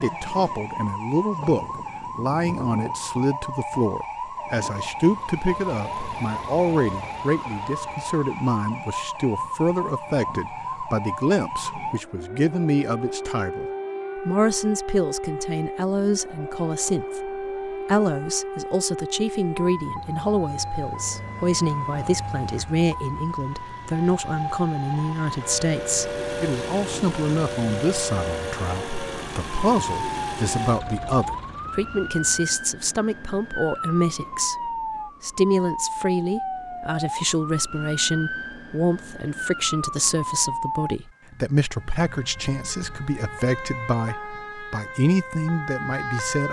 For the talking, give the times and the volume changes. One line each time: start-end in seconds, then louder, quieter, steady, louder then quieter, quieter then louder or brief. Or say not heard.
0.0-46.4 steady.